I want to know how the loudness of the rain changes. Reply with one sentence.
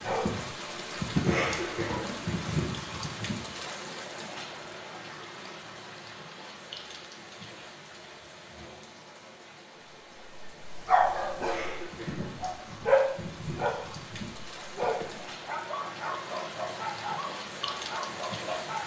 The volume of the rain goes down, then up.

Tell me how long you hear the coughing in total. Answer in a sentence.
The coughing can be heard for 3 seconds in total.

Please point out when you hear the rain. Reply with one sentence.
You can hear the rain from 0.0 to 18.8 s.